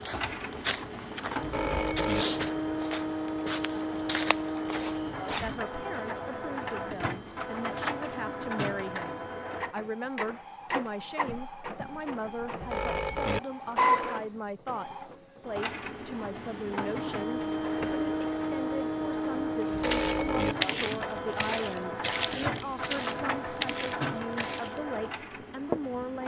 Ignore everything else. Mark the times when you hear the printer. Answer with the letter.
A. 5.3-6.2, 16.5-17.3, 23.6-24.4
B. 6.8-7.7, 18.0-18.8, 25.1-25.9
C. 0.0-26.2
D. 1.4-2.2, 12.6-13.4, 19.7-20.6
C.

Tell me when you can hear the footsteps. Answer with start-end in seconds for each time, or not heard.
0.0-5.6, 19.6-24.8, 25.4-26.0.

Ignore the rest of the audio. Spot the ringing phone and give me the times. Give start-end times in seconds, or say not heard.
1.4-2.2, 12.6-13.4, 19.7-20.6.